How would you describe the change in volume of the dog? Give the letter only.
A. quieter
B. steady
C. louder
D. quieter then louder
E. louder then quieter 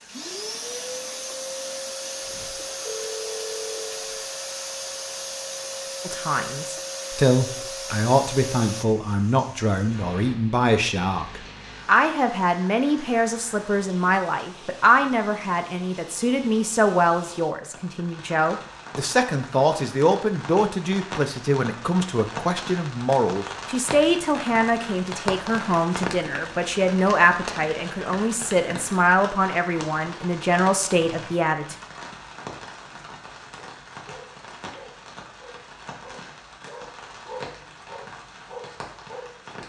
C.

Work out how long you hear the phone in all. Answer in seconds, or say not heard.
2 s.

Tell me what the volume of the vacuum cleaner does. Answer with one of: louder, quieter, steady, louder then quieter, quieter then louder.
steady.